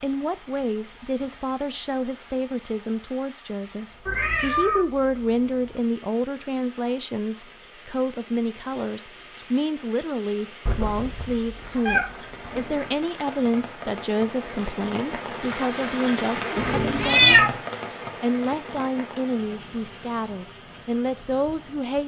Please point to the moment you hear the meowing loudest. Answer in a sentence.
The volume of the meowing peaks at 17 seconds.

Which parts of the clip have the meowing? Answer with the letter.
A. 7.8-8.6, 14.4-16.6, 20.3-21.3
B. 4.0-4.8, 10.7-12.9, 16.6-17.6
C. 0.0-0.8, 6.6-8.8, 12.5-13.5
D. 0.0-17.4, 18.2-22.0
B.